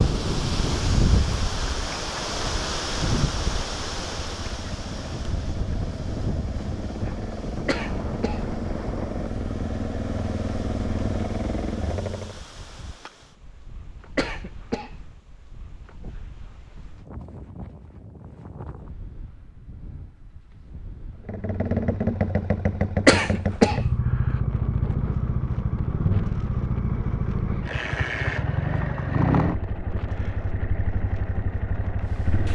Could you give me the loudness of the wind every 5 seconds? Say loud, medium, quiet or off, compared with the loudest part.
loud, medium, quiet, quiet, quiet, quiet, quiet.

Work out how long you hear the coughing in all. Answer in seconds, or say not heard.
2 s.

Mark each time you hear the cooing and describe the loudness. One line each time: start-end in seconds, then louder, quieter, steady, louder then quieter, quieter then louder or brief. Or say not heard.
not heard.